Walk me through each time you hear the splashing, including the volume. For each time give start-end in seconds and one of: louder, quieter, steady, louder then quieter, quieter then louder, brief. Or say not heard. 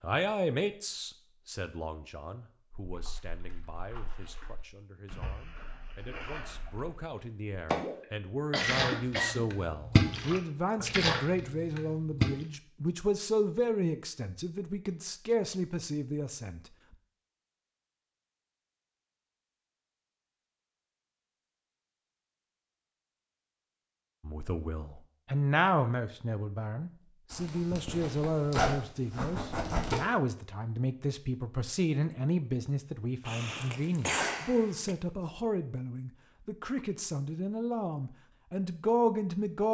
2.9-12.3 louder.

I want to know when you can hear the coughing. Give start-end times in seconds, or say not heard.
8.5-9.6, 33.2-35.0.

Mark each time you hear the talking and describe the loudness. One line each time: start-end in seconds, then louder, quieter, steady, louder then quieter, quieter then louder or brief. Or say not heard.
0.0-16.6 quieter then louder
24.2-39.7 steady.